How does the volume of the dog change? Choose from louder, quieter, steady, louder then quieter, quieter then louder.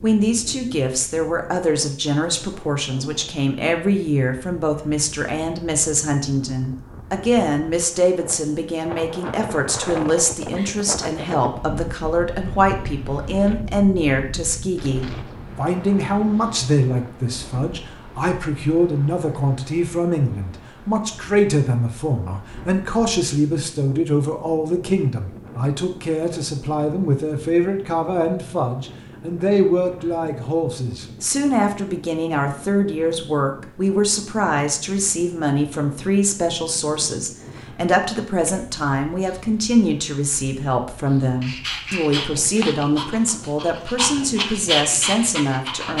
quieter then louder.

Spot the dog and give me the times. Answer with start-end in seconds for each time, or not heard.
41.4-45.9.